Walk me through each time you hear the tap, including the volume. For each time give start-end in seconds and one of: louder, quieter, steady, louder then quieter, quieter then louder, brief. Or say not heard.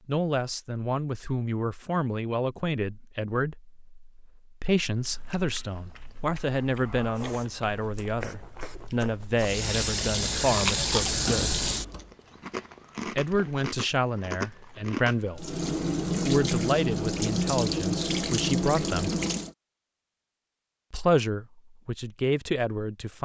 9.3-12.2 brief
15.3-19.6 steady.